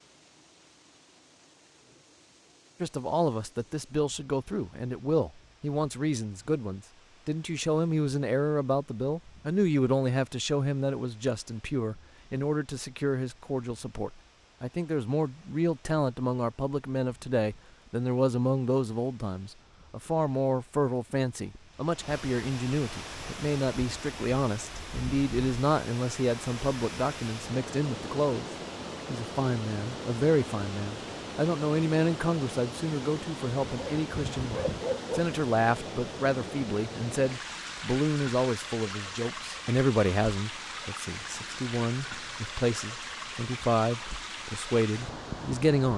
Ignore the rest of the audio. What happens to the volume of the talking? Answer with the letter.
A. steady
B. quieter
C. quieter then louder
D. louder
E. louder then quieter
A.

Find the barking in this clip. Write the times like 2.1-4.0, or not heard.
33.6-35.3.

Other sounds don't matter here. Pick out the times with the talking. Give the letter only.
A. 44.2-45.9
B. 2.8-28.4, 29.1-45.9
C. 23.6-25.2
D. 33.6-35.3
B.